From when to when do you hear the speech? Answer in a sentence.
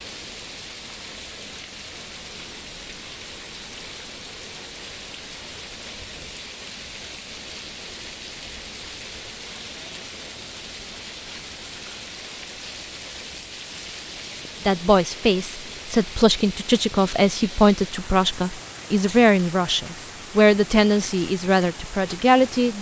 The speech can be heard from 14.7 to 22.7 s.